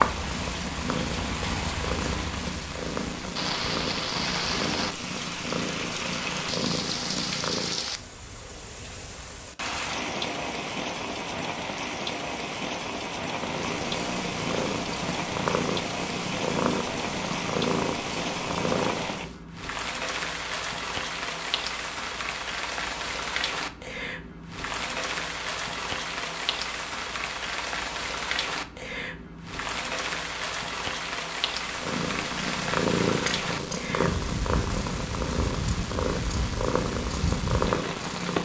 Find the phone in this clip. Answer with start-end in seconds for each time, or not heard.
not heard.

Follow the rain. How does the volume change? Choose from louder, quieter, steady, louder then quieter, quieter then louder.
steady.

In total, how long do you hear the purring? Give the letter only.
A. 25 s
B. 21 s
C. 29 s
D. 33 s
B.